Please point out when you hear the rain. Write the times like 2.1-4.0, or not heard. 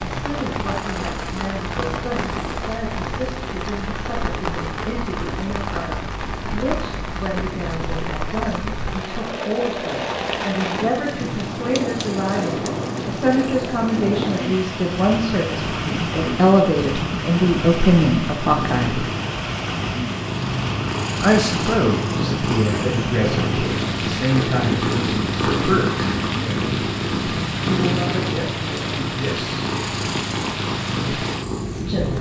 0.0-32.1.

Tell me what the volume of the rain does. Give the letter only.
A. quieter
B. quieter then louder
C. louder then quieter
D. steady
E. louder
D.